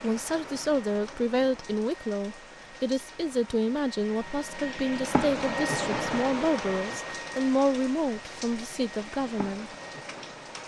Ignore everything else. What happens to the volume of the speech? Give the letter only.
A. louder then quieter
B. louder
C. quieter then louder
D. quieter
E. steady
E.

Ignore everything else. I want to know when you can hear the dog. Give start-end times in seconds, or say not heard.
not heard.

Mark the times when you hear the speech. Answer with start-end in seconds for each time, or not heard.
0.0-9.7.